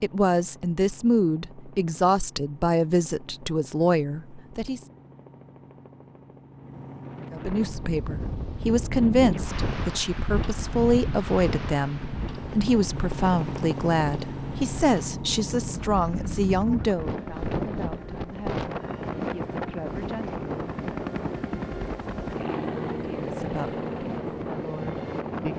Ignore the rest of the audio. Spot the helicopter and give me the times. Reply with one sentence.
The helicopter can be heard from 0.0 to 25.5 s.